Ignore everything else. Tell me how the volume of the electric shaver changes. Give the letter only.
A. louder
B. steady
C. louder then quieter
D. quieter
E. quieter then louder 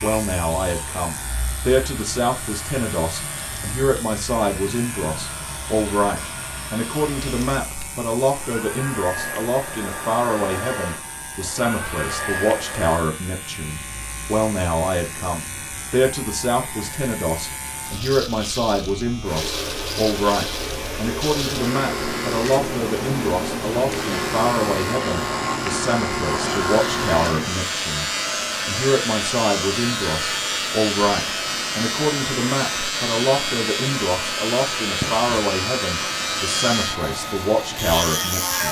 A.